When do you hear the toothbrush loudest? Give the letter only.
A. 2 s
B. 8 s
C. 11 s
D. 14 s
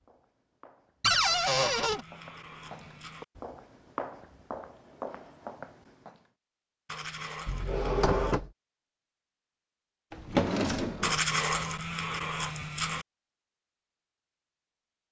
C.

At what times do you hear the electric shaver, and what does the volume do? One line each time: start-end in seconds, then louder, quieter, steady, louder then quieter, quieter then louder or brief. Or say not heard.
not heard.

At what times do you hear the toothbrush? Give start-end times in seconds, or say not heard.
1.2-3.2, 6.8-8.4, 11.0-13.1.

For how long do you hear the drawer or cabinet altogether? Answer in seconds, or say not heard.
3 s.